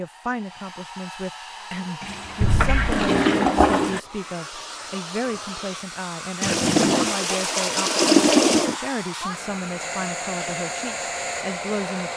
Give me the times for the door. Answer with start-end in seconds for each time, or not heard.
2.4-3.0.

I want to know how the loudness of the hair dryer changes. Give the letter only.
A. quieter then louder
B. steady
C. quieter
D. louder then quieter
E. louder
E.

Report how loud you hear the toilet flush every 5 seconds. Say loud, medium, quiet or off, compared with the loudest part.
loud, loud, off.